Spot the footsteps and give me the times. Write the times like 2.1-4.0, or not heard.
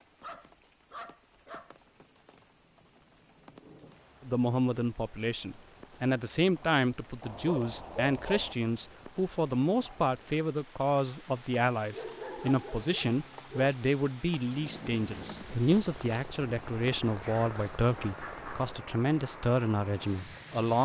not heard.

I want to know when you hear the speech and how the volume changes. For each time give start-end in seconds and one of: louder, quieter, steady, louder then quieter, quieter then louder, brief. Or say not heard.
4.2-20.8 steady.